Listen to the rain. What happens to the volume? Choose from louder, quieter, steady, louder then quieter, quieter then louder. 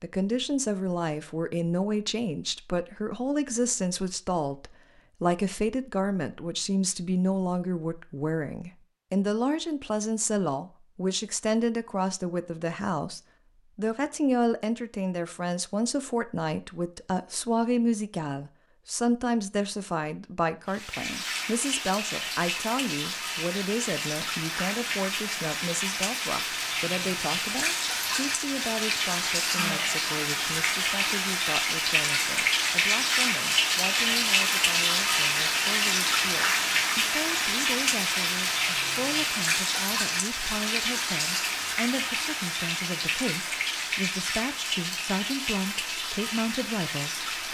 louder then quieter.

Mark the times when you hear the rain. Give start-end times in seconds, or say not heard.
20.6-47.4.